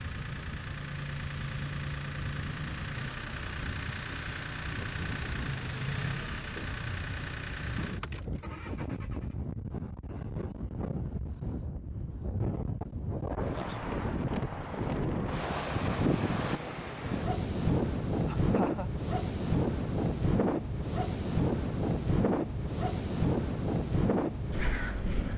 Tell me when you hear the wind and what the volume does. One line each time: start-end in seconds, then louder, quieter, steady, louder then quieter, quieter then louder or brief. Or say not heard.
0.0-25.3 louder.